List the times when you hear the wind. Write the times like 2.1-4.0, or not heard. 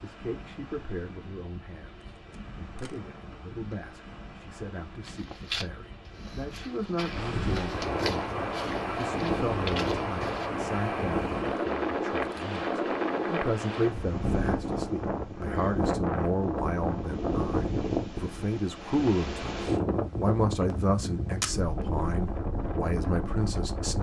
0.0-23.9.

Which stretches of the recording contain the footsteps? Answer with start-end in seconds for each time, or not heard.
5.0-10.5.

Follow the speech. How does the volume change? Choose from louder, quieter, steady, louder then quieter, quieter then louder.
louder.